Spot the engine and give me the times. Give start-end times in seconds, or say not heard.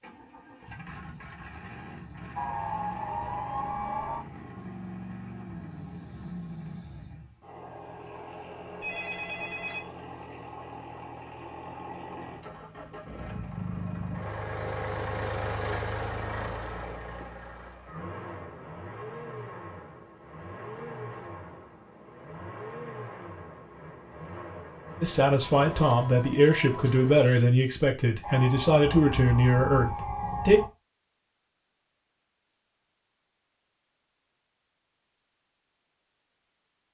0.0-27.3.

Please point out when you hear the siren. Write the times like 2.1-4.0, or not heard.
2.4-4.2, 28.2-30.7.